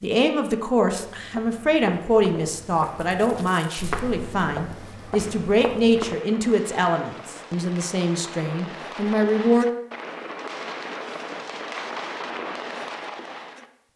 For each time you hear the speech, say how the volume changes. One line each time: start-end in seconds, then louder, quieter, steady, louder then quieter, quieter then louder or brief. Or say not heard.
0.0-9.7 steady.